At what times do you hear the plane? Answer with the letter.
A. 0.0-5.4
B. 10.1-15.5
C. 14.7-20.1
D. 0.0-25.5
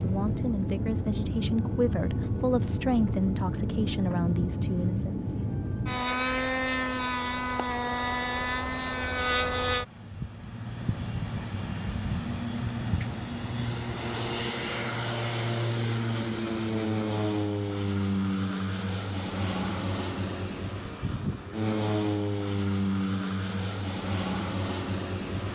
D.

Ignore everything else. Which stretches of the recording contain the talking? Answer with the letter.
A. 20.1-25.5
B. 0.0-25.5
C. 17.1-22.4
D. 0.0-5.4
D.